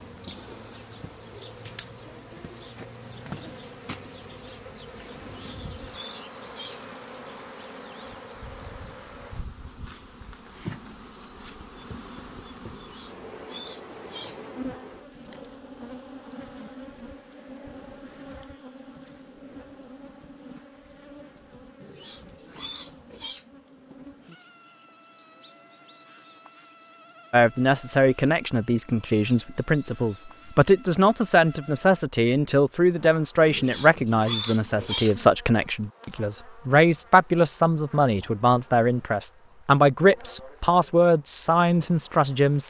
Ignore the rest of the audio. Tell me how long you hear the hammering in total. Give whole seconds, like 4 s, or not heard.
not heard.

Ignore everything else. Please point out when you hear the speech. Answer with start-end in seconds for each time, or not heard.
27.3-42.6.